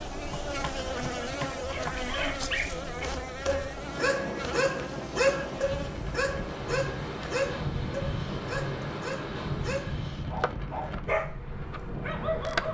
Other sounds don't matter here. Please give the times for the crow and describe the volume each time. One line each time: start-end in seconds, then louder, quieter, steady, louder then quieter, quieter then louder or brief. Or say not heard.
not heard.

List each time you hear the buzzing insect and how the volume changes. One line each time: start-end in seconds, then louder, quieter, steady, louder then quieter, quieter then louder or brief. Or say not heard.
0.0-12.7 quieter.